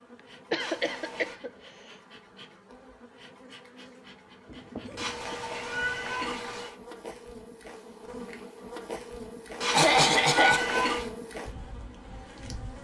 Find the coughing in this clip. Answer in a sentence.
You can hear the coughing from 0.5 to 1.5 s, from 4.5 to 6.2 s and from 9.7 to 10.7 s.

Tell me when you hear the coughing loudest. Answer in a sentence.
The loudest moment of the coughing is at 10 seconds.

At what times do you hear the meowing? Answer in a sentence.
The meowing can be heard from 0.6 to 1.4 s, from 5.0 to 6.8 s and from 9.6 to 11.1 s.